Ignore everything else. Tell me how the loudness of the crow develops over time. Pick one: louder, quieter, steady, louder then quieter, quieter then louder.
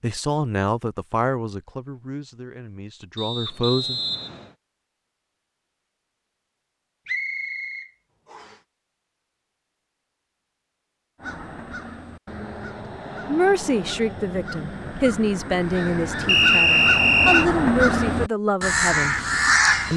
louder.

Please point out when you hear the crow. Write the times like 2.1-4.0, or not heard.
11.2-19.9.